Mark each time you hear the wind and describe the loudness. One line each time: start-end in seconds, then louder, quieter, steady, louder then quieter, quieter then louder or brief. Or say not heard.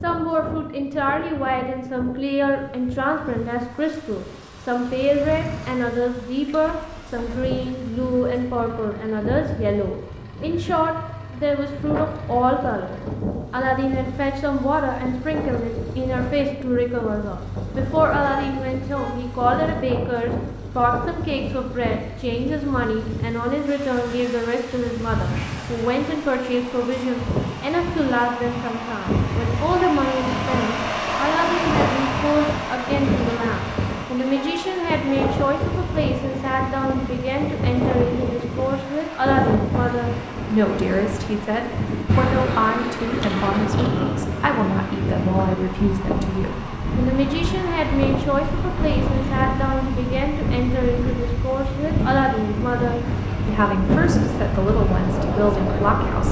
0.0-56.2 louder.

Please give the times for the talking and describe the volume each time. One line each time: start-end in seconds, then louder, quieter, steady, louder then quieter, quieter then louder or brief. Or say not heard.
0.0-56.2 steady.